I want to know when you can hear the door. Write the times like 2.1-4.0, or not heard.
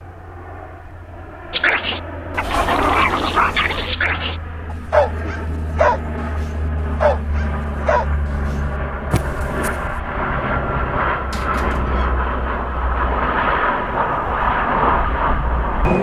2.3-4.0, 11.3-12.2.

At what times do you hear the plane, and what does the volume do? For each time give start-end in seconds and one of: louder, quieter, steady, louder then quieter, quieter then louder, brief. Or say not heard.
0.0-15.9 louder.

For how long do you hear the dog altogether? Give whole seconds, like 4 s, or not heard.
8 s.